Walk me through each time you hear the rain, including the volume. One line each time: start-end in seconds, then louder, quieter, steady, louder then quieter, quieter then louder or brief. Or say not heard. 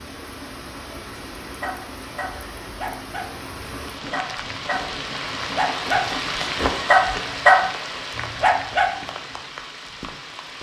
0.0-10.5 louder then quieter.